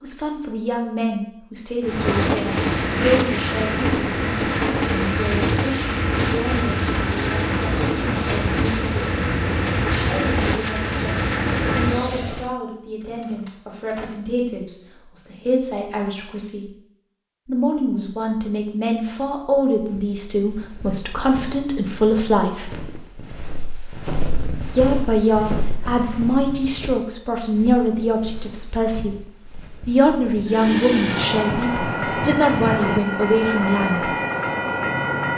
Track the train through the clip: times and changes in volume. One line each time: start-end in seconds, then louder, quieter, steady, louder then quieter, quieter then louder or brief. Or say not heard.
1.8-12.6 steady
30.4-35.3 steady.